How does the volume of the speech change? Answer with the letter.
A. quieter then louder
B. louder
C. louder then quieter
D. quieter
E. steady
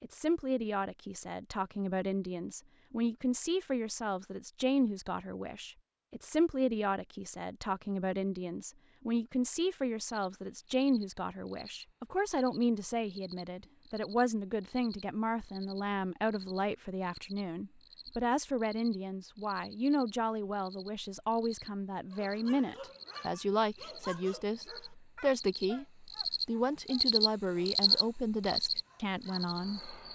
E.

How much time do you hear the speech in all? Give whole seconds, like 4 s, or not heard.
30 s.